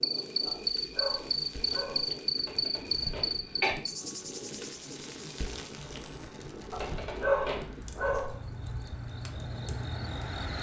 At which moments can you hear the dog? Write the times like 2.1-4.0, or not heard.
0.5-2.1, 6.7-8.4.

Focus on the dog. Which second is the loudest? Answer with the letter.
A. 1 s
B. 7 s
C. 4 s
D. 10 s
B.